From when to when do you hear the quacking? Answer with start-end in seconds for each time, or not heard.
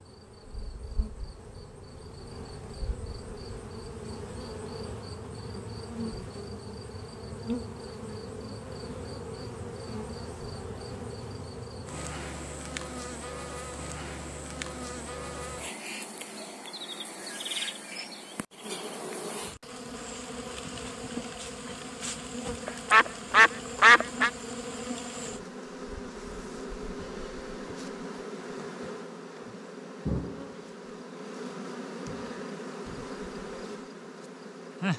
22.6-24.3.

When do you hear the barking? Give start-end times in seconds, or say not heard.
not heard.